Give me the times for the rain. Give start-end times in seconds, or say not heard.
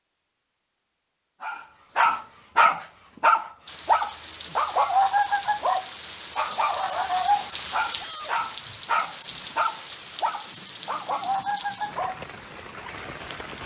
3.6-13.6.